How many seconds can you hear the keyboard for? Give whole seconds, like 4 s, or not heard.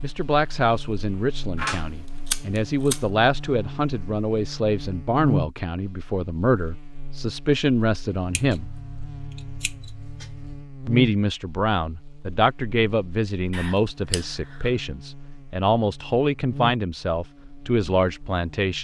not heard.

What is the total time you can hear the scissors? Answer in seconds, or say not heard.
5 s.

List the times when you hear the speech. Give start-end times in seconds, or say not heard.
0.0-8.7, 10.8-18.7.